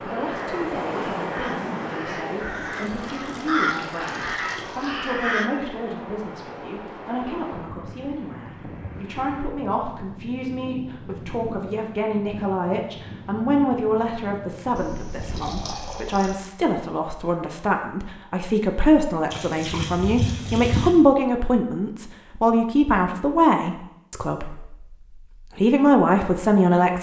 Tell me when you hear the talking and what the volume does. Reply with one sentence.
The talking can be heard from 0.0 to 24.9 s, getting louder; and briefly from 25.6 to 26.9 s.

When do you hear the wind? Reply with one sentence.
You can hear the wind from 0.0 to 16.0 s.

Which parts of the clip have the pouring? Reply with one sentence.
The pouring can be heard from 2.6 to 5.0 s, from 14.8 to 16.4 s and from 19.3 to 20.9 s.